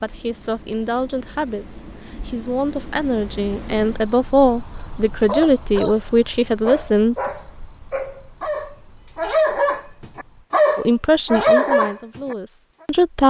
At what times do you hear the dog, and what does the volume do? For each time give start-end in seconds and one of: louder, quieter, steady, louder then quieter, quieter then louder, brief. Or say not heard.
5.2-12.3 louder.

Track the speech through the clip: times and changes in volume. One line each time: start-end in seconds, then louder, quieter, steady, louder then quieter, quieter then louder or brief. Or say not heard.
0.0-7.2 louder
10.8-13.2 brief.